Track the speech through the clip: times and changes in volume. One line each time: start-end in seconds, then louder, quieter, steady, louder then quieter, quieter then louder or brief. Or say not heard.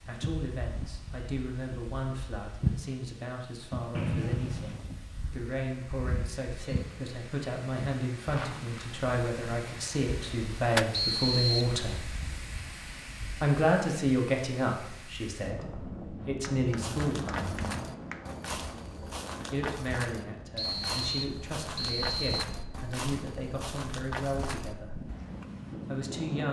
0.1-12.0 louder
13.4-17.5 quieter then louder
19.5-25.0 steady
25.9-26.4 brief.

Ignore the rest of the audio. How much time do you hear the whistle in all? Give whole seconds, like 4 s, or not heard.
4 s.